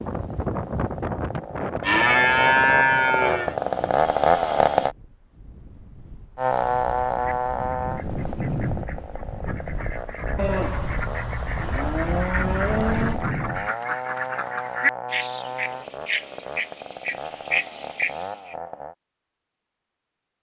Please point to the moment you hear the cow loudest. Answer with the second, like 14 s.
3 s.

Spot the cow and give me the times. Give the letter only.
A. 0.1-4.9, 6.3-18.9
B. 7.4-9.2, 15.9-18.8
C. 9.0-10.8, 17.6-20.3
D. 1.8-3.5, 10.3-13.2
D.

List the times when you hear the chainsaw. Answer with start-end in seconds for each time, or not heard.
0.1-4.9, 6.3-18.9.